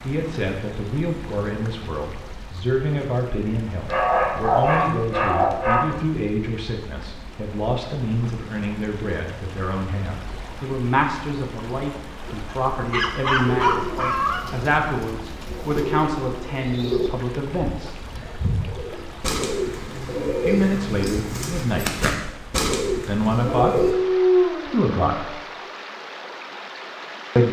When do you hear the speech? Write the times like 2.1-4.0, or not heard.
0.1-17.9, 20.4-22.4, 23.1-24.1, 24.6-25.4.